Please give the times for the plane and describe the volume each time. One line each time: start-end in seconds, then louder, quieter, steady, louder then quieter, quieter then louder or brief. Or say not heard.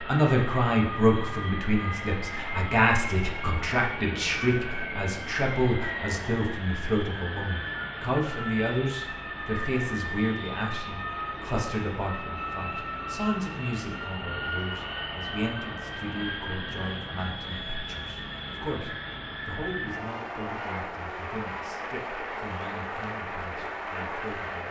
0.0-24.6 steady.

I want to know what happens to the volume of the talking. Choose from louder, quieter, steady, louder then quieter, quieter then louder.
quieter.